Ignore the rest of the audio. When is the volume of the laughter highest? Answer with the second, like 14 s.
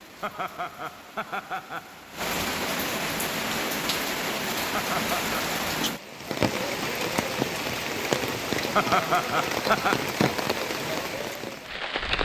9 s.